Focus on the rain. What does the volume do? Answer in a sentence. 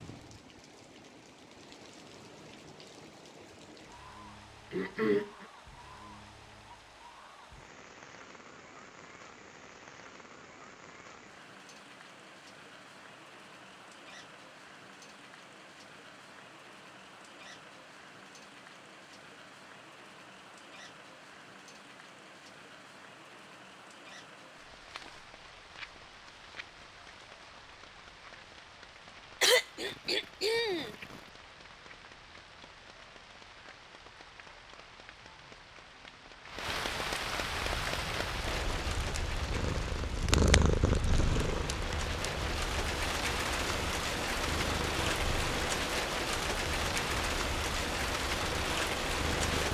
The loudness of the rain goes up.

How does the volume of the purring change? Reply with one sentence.
The loudness of the purring goes up, then down.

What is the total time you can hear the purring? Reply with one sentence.
The purring can be heard for 12 seconds in total.